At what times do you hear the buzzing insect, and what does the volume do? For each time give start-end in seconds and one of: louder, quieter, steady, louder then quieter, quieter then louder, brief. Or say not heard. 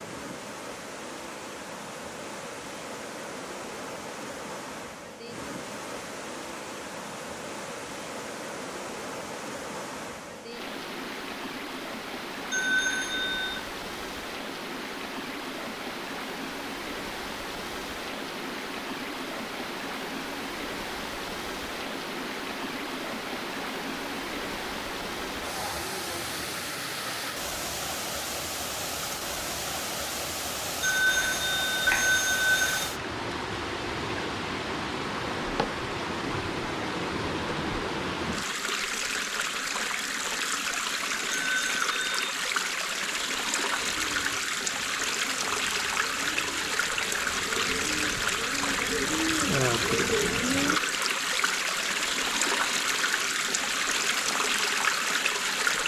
not heard.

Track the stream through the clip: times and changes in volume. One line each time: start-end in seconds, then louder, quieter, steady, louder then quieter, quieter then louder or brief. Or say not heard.
0.0-55.8 louder.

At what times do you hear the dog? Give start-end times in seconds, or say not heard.
not heard.